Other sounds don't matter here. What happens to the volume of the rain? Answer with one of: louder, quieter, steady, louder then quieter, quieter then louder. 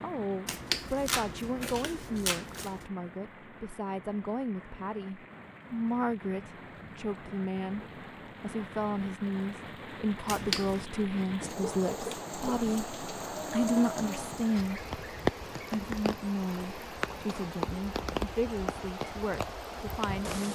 louder.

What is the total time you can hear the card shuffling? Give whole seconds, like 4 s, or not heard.
3 s.